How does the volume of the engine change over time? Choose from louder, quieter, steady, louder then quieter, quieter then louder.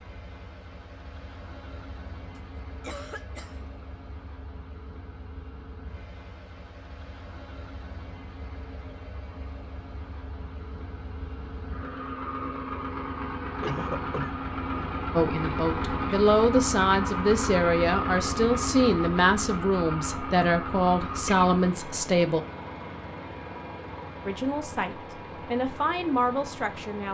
louder then quieter.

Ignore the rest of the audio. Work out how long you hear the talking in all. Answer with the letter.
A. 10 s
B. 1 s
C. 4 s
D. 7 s
A.